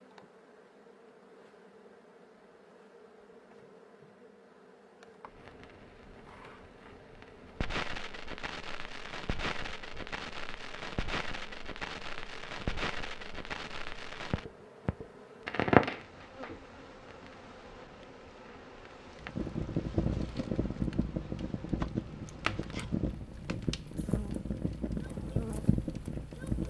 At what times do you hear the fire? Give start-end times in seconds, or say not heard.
5.3-26.6.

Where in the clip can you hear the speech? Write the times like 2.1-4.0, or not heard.
not heard.